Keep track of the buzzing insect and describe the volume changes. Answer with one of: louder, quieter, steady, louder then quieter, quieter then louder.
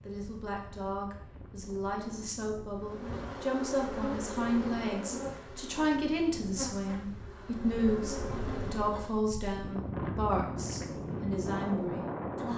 quieter then louder.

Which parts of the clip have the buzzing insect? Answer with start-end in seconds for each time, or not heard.
2.8-9.1.